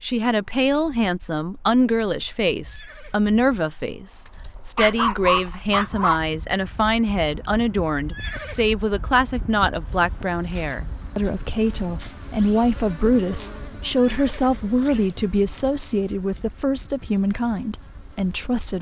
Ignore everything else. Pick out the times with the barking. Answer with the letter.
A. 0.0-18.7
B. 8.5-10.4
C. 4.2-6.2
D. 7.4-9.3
C.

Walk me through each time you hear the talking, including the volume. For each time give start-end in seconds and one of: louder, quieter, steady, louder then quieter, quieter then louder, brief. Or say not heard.
0.0-18.7 steady.